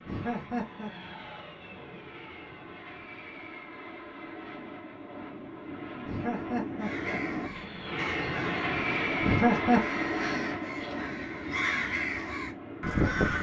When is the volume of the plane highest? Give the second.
9 s.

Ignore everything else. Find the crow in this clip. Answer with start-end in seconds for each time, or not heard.
6.8-13.3.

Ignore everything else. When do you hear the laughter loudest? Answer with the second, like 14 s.
10 s.